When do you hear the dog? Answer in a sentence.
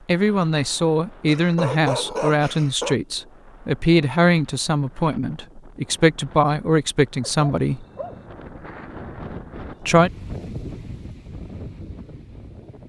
You can hear the dog from 1.2 to 3.0 s and from 7.2 to 8.2 s.